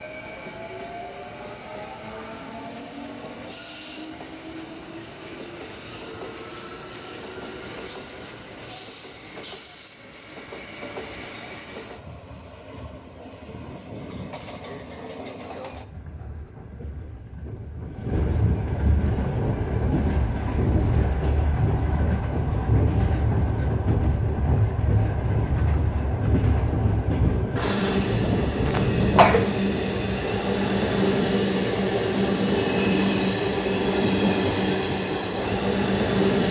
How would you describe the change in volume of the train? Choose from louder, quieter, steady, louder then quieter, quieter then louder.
louder.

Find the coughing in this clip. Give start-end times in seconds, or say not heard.
28.6-29.4.